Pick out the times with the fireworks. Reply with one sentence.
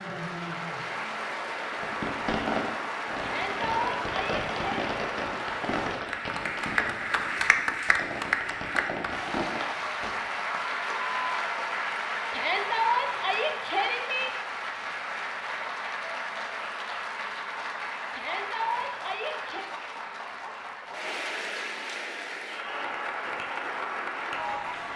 You can hear the fireworks from 1.7 to 10.2 s.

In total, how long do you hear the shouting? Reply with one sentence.
The shouting can be heard for 5 seconds in total.